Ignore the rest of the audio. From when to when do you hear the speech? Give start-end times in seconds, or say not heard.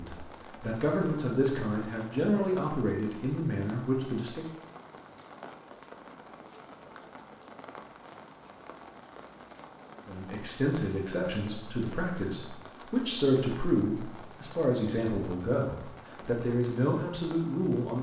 0.0-4.5, 10.1-17.9.